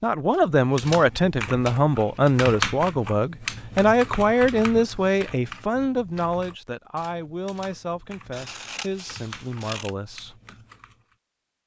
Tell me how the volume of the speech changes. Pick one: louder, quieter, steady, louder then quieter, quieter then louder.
quieter.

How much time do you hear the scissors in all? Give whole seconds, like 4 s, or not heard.
2 s.